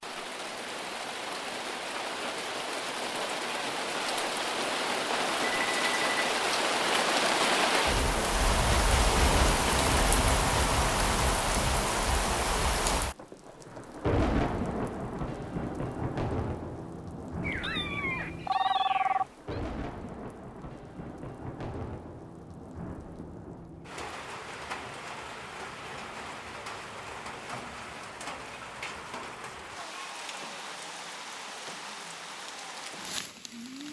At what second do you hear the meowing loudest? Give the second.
18 s.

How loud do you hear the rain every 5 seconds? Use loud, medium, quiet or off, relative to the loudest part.
medium, loud, loud, medium, quiet, quiet, quiet.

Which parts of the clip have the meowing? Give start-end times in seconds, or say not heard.
17.4-19.6.